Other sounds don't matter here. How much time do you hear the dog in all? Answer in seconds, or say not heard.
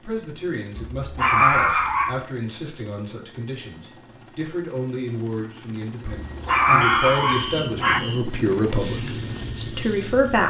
3 s.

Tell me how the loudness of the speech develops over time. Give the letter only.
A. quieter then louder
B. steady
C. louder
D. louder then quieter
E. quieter
C.